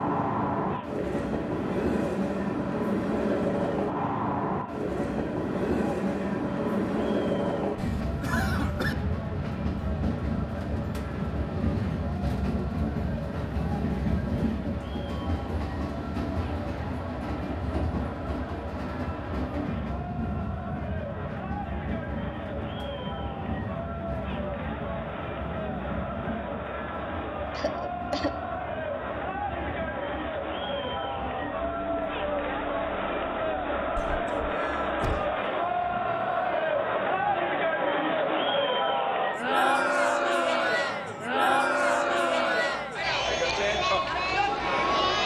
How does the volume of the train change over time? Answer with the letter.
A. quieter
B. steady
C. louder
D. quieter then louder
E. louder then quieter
A.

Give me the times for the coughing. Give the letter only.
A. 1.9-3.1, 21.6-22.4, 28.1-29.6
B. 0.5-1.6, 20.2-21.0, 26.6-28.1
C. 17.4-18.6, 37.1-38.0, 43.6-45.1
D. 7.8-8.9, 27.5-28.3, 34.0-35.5
D.